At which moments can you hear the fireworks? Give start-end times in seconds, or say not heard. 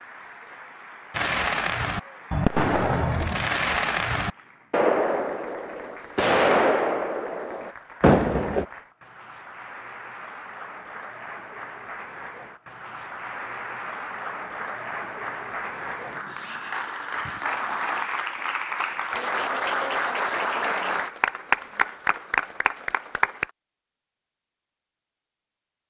1.1-8.7.